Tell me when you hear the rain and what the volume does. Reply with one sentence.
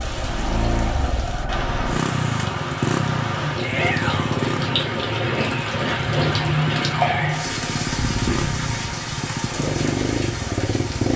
The rain can be heard from 0.0 to 11.1 s, getting louder then quieter.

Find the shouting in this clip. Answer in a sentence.
You can hear the shouting from 3.6 to 4.5 s.